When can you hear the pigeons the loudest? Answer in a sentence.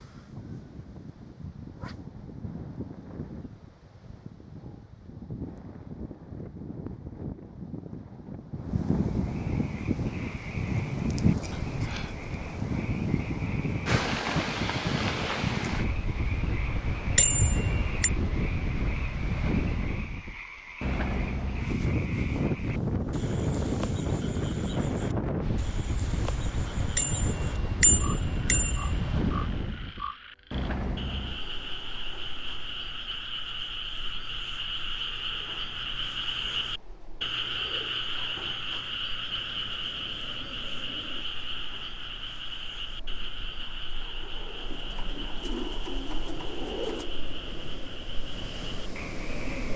The loudest moment of the pigeons is at 46 seconds.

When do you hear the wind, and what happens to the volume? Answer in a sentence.
The wind can be heard from 0.0 to 49.7 s, getting louder then quieter.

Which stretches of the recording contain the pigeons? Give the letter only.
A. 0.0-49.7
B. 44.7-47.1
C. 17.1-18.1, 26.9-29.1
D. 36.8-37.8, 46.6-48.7
B.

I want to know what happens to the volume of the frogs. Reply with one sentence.
The loudness of the frogs goes up, then down.